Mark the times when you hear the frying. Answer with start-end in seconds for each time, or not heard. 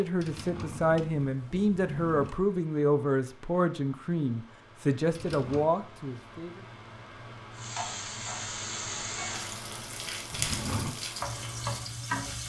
7.5-12.4.